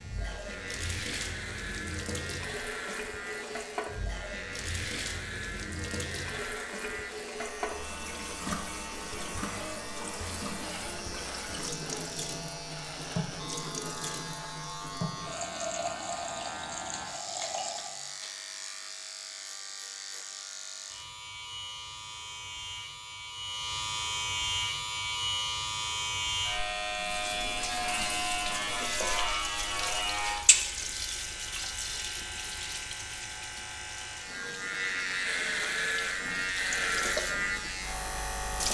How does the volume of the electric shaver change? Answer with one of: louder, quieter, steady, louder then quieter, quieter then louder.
louder.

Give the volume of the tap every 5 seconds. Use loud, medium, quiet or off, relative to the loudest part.
loud, loud, loud, loud, off, loud, loud, loud.